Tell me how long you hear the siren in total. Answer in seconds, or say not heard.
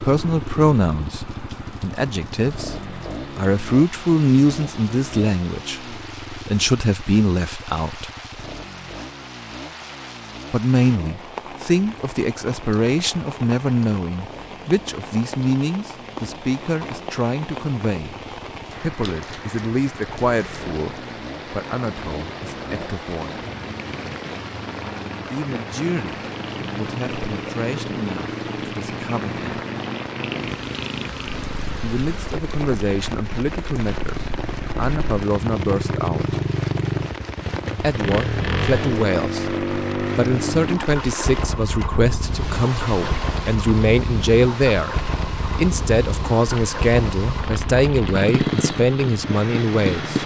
not heard.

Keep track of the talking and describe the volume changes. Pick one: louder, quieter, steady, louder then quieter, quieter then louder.
quieter then louder.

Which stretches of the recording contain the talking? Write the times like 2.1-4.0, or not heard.
0.0-8.1, 10.5-18.1, 18.8-23.4, 25.3-29.4, 31.8-36.4, 37.8-50.2.